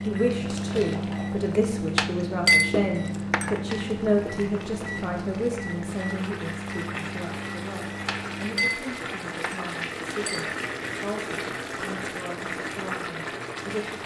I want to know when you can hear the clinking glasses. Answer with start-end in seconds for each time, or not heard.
1.9-3.8, 8.1-10.6.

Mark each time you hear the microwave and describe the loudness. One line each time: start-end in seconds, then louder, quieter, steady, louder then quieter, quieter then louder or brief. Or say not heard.
0.0-8.7 quieter.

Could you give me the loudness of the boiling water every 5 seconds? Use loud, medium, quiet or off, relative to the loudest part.
medium, loud, loud.